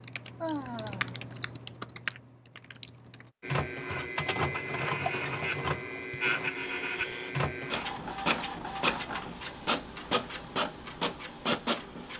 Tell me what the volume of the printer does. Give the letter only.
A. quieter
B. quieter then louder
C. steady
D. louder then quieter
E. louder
C.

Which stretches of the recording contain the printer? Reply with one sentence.
The printer can be heard from 3.4 to 12.1 s.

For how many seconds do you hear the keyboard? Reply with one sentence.
The keyboard can be heard for 3 seconds in total.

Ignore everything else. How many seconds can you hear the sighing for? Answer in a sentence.
You can hear the sighing for 2 seconds altogether.